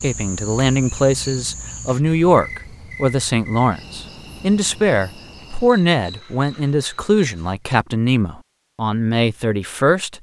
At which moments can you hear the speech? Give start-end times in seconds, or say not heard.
0.0-10.1.